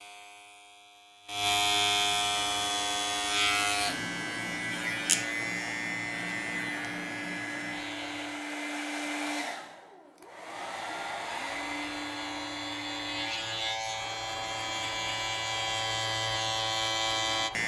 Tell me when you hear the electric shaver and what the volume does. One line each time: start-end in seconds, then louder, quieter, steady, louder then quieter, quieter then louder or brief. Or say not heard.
0.0-8.4 quieter
10.6-17.6 louder.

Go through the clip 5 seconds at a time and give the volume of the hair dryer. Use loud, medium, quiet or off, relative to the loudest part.
medium, loud, loud, medium.